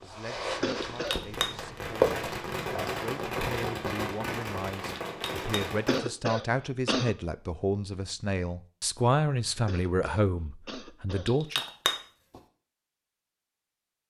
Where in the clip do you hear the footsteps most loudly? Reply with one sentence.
The volume of the footsteps peaks at 2 seconds.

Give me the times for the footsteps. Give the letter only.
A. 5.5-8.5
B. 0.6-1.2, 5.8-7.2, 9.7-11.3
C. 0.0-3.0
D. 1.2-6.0
C.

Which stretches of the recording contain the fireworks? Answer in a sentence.
You can hear the fireworks from 1.2 to 6.0 s.